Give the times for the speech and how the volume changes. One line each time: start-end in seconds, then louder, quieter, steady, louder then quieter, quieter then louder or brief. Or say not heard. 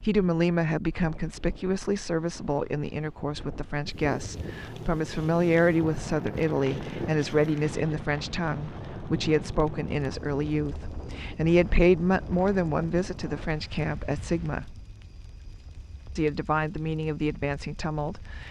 0.0-14.8 steady
16.1-18.4 brief.